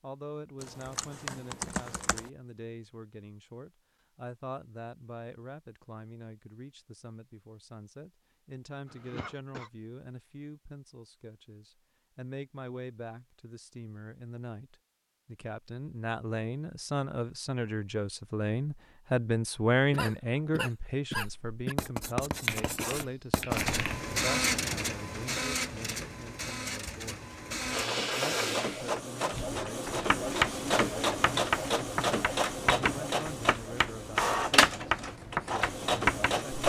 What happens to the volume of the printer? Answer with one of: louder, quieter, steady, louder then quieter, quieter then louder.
steady.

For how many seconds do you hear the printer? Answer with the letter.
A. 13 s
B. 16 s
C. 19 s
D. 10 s
A.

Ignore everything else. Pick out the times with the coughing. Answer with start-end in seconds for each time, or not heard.
8.9-9.7, 19.8-21.8.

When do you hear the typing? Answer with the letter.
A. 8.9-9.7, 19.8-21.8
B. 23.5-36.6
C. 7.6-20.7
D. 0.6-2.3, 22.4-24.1
D.